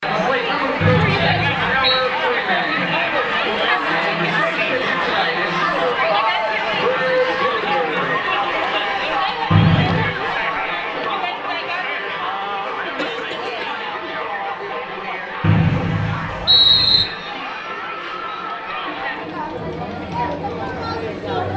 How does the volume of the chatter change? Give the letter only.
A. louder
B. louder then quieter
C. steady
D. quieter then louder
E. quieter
E.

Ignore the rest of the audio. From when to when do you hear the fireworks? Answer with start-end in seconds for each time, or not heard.
not heard.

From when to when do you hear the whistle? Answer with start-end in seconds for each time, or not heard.
0.8-2.0, 9.5-10.2, 15.4-17.1.